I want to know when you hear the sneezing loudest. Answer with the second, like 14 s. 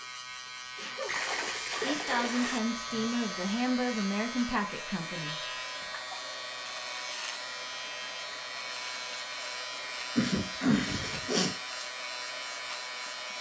11 s.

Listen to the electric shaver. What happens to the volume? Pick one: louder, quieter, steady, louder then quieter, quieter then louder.
steady.